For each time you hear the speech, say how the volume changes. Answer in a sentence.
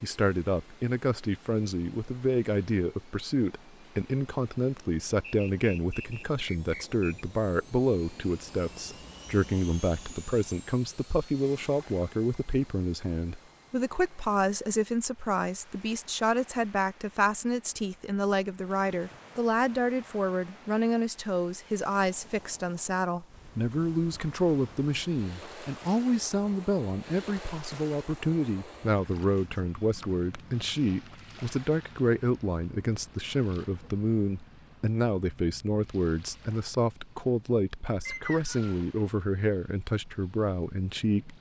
The speech can be heard from 0.0 to 41.3 s, at a steady volume.